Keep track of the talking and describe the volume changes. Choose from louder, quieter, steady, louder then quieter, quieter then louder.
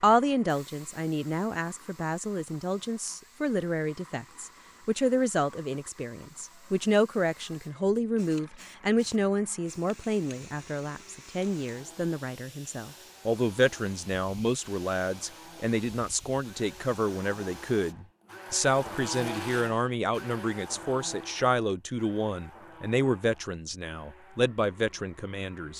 steady.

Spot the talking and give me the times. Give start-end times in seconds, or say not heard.
0.0-25.7.